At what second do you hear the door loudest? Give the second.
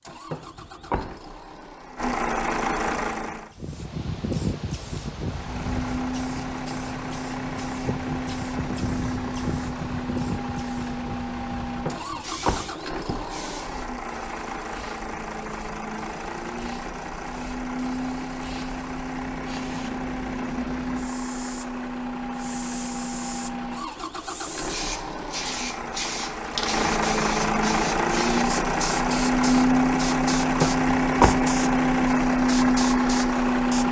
31 s.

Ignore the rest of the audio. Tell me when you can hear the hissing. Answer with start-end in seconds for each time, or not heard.
3.5-33.8.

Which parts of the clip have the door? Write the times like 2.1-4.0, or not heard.
0.3-1.1, 11.8-13.2, 30.6-31.4.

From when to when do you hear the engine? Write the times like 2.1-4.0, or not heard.
0.0-3.5, 5.2-33.8.